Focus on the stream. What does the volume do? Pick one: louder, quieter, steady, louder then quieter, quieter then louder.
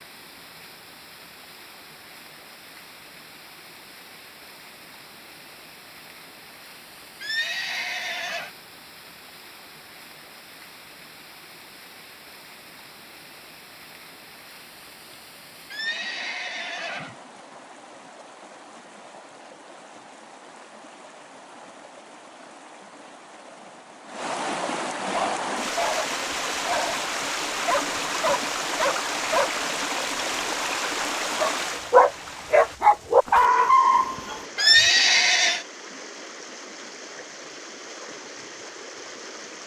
louder then quieter.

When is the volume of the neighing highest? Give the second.
35 s.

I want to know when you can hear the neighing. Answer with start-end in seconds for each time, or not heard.
7.2-8.5, 15.7-17.1, 34.5-35.6.